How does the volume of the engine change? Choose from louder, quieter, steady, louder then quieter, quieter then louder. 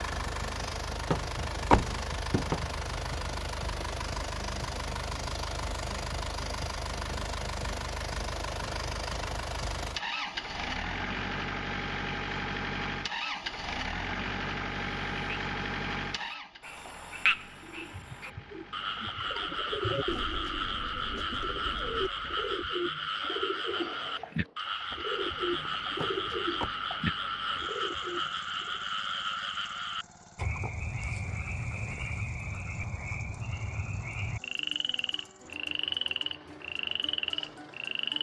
quieter.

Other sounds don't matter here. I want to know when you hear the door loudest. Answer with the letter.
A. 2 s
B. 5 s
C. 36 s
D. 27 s
A.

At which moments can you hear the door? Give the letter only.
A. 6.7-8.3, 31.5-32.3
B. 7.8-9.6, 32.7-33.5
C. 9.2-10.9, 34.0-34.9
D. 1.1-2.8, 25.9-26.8
D.